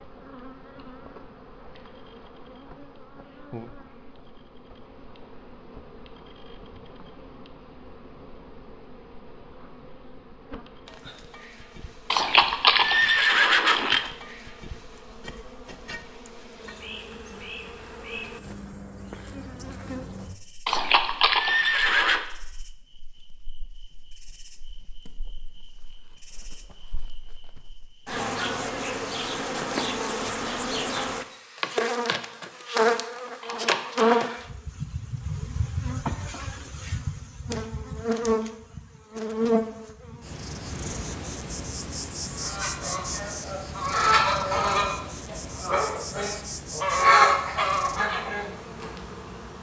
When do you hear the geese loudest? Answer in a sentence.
The volume of the geese peaks at 47 seconds.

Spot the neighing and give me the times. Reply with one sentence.
The neighing can be heard from 12.1 to 14.1 s, from 20.6 to 22.2 s and from 33.4 to 34.3 s.